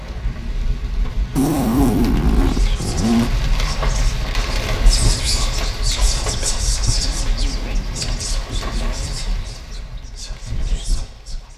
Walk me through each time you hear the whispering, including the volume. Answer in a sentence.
You can hear the whispering from 2.3 to 11.5 s, getting louder then quieter.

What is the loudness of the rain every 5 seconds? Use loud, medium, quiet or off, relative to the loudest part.
loud, loud, medium.